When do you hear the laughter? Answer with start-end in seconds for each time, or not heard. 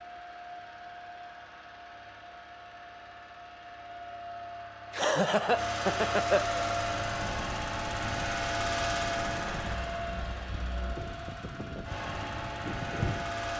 4.9-6.7.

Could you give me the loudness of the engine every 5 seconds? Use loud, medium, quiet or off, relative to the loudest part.
quiet, loud, medium.